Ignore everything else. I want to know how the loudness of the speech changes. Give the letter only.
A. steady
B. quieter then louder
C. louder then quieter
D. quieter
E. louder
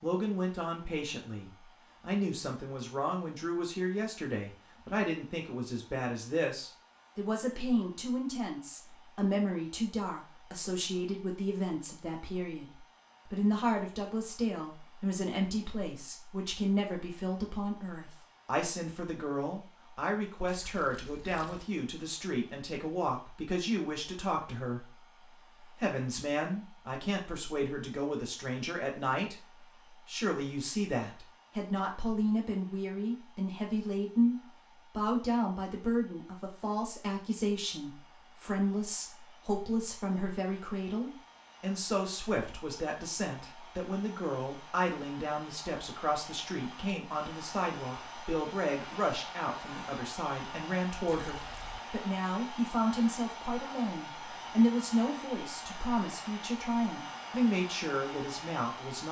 A.